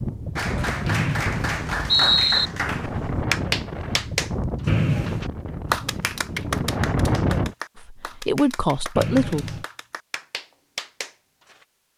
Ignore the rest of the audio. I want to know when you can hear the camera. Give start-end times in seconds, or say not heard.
not heard.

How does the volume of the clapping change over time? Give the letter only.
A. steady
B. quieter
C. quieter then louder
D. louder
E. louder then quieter
B.